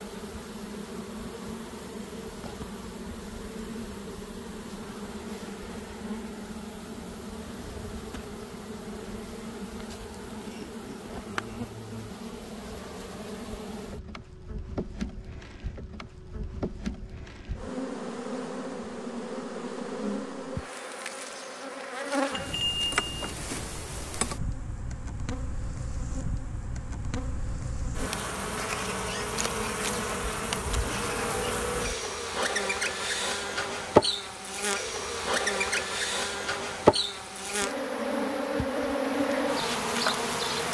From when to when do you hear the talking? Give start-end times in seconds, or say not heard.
not heard.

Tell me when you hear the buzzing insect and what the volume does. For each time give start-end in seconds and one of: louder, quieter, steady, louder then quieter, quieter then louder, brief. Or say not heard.
0.0-40.6 louder.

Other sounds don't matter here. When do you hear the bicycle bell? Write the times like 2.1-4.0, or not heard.
22.3-23.4.